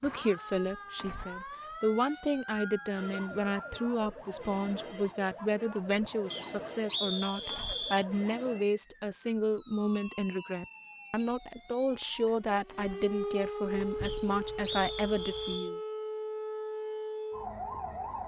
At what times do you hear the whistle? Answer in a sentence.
The whistle can be heard from 2.0 to 3.9 s, from 6.3 to 8.1 s and from 14.1 to 15.7 s.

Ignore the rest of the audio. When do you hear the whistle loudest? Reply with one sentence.
The volume of the whistle peaks at 7 seconds.